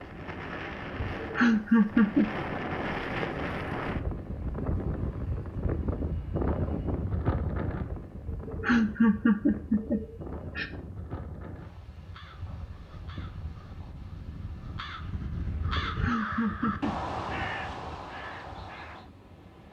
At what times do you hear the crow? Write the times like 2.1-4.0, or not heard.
12.1-19.1.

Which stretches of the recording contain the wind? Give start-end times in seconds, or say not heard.
0.0-19.6.